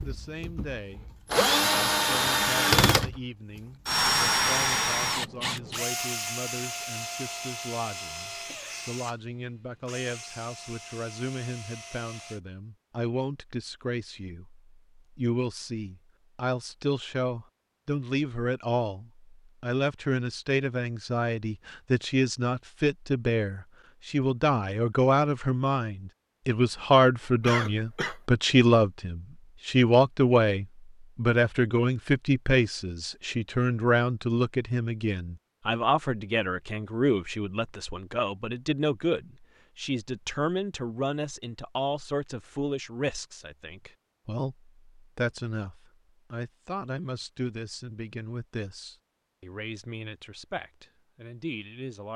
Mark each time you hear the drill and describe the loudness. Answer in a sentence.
The drill can be heard from 0.0 to 12.4 s, getting quieter.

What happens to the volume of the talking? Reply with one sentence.
The loudness of the talking goes up, then down.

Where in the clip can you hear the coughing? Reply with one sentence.
The coughing can be heard from 27.4 to 28.1 s.